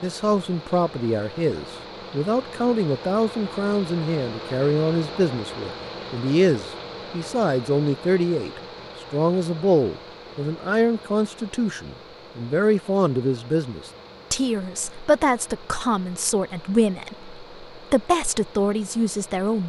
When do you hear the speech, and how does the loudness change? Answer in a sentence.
You can hear the speech from 0.0 to 19.6 s, at a steady volume.